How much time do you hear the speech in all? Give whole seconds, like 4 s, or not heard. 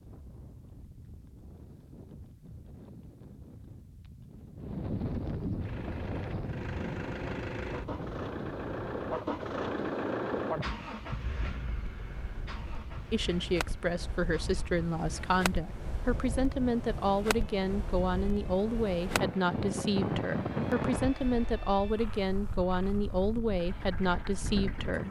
12 s.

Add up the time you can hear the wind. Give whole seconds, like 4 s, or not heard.
25 s.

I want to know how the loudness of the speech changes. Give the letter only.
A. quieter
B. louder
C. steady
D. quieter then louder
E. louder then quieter
C.